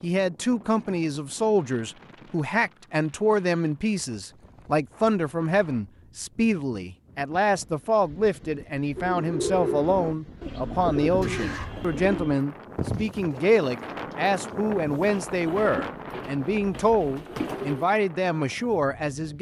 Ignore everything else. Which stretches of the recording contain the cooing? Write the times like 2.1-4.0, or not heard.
8.9-17.9.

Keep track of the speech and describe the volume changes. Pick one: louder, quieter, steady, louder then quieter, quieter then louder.
steady.